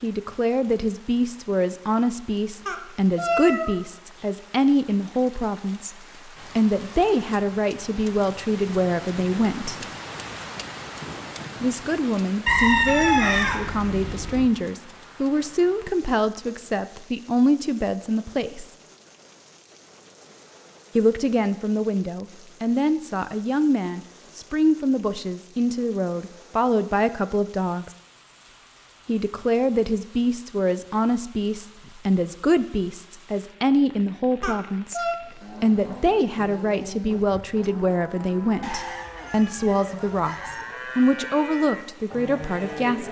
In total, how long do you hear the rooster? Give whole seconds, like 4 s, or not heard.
4 s.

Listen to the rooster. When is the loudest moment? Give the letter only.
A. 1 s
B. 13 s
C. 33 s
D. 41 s
B.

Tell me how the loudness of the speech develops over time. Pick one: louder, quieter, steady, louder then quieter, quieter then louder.
steady.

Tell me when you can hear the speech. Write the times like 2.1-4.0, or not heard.
0.0-6.0, 6.5-9.8, 11.6-18.8, 20.9-27.9, 29.1-35.0, 35.6-43.0.